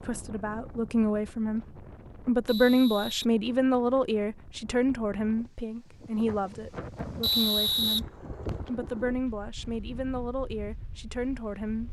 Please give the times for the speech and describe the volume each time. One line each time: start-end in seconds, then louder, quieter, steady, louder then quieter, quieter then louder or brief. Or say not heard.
0.0-1.6 brief
2.2-11.8 quieter.